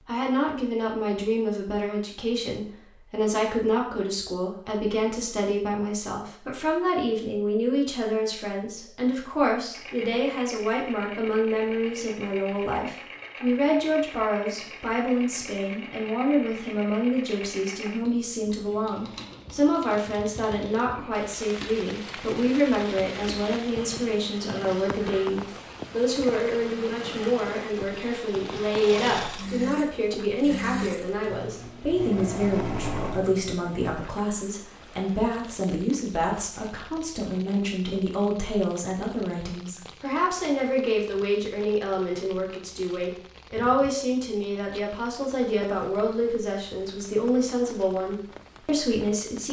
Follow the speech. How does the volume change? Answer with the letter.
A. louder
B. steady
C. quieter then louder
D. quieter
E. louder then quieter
B.